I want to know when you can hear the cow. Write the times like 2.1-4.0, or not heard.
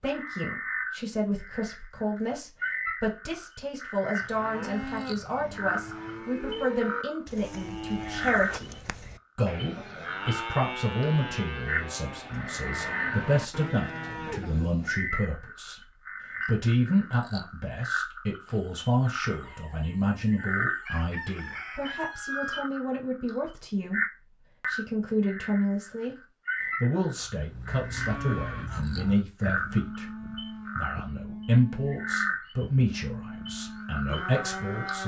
4.2-15.2, 27.2-35.0.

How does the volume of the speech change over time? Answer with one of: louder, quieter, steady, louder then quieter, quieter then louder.
steady.